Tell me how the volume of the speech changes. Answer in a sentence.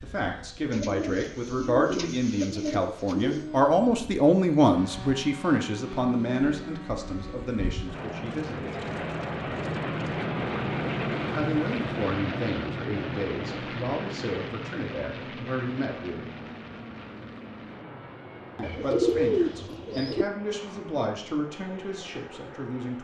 The loudness of the speech goes down.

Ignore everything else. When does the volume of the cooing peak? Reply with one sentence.
The volume of the cooing peaks at 19 seconds.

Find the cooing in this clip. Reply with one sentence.
You can hear the cooing from 0.7 to 3.5 s and from 18.6 to 20.2 s.